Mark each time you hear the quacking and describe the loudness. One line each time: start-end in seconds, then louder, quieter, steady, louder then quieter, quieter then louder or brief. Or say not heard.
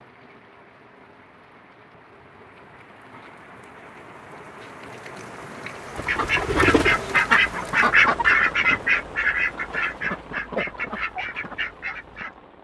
5.9-12.3 quieter.